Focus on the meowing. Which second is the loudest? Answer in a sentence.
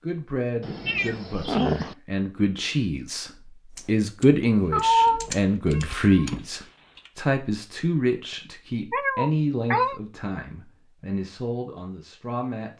The loudest moment of the meowing is at 5 seconds.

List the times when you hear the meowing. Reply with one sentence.
You can hear the meowing from 0.6 to 1.9 s, from 4.7 to 6.4 s and from 8.9 to 10.0 s.